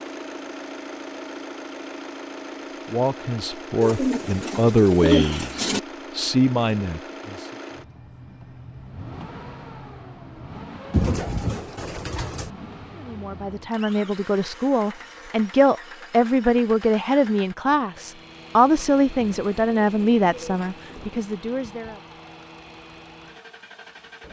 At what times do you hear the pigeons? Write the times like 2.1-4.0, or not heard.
3.8-5.8, 10.9-12.5, 19.2-21.2.